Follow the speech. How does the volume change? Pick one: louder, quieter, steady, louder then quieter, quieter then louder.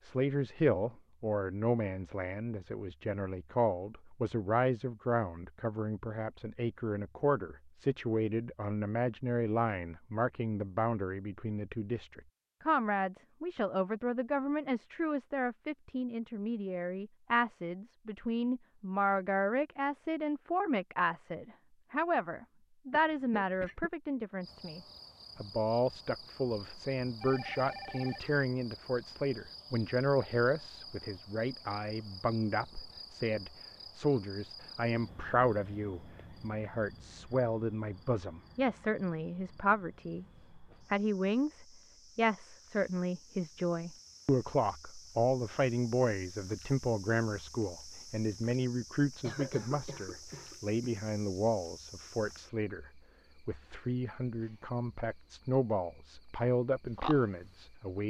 steady.